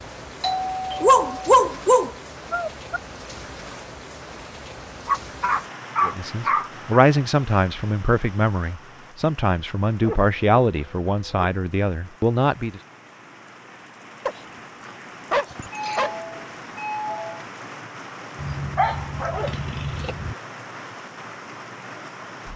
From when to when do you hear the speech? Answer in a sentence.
You can hear the speech from 6.0 to 12.8 s.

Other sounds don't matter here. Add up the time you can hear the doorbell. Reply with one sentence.
You can hear the doorbell for 3 seconds altogether.